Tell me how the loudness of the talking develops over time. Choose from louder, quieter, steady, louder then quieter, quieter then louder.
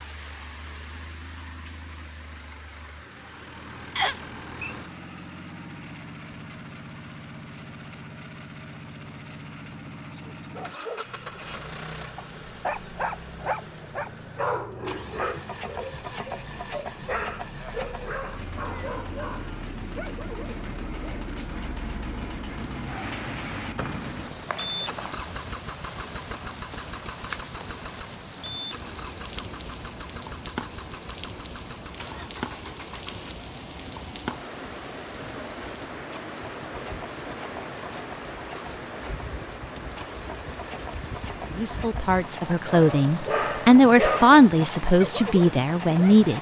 louder then quieter.